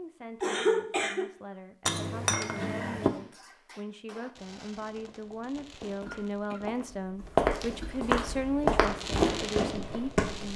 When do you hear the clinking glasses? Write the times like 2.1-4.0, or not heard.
1.9-3.1.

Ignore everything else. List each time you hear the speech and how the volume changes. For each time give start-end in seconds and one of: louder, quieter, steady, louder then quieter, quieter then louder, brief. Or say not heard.
0.0-10.5 louder.